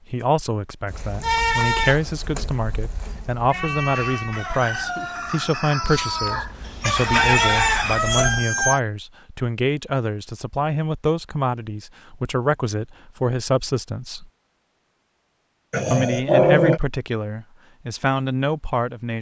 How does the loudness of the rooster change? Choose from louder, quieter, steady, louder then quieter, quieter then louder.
louder.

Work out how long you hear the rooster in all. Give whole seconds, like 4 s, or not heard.
5 s.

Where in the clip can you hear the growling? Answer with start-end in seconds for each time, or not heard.
15.7-16.8.